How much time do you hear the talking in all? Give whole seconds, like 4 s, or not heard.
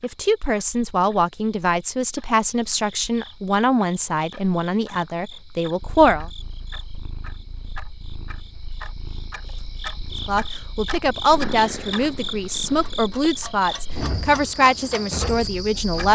12 s.